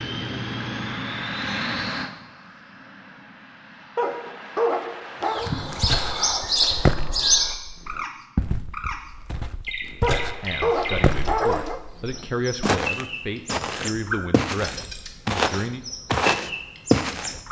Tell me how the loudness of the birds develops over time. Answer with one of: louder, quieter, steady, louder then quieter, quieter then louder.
quieter.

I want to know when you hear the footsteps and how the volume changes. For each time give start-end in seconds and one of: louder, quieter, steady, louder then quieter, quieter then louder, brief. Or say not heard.
5.6-17.4 louder.